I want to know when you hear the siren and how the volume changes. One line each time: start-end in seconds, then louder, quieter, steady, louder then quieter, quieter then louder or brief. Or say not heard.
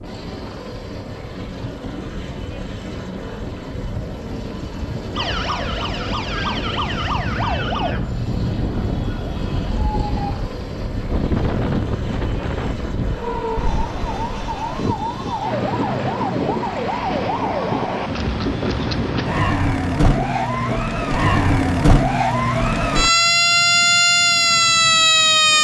5.1-10.4 quieter
13.2-25.5 louder.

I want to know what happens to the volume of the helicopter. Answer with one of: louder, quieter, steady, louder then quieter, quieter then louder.
steady.